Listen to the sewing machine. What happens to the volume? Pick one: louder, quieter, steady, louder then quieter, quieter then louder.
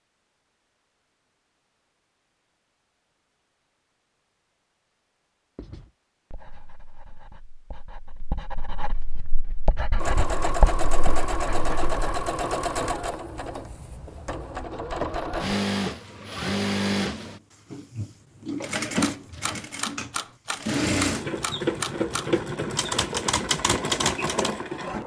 steady.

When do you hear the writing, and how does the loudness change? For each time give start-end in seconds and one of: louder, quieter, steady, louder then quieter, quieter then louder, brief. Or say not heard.
5.5-12.2 louder then quieter.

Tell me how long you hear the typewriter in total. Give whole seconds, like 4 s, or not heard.
6 s.